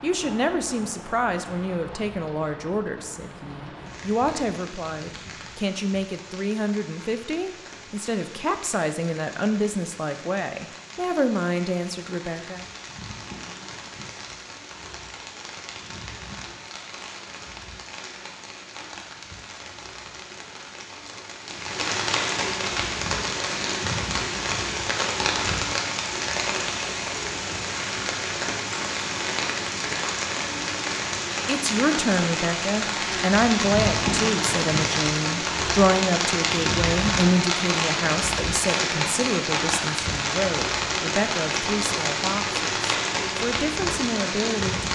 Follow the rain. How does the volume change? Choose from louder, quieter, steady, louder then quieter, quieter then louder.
louder.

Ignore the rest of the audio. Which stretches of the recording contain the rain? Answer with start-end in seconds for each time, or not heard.
0.0-44.9.